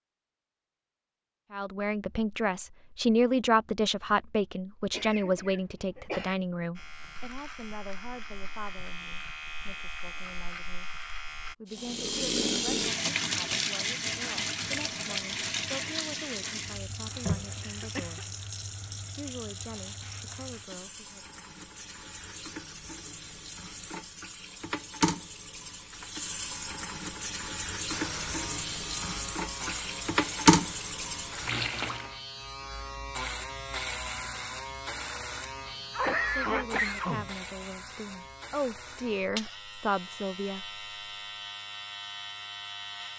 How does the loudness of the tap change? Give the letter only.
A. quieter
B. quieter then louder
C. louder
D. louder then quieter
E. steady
B.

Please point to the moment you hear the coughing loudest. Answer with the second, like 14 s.
36 s.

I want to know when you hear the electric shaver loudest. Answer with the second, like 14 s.
34 s.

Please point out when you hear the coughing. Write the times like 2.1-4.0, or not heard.
4.9-6.3, 17.6-18.2, 35.8-37.3.